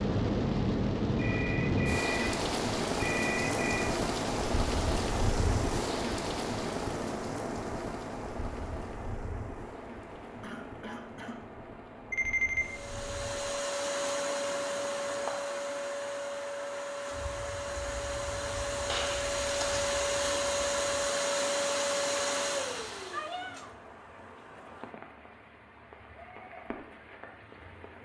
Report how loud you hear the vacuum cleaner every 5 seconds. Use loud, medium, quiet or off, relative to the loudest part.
off, off, loud, loud, loud, off.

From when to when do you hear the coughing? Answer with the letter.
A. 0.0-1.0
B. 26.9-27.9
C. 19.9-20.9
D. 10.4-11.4
D.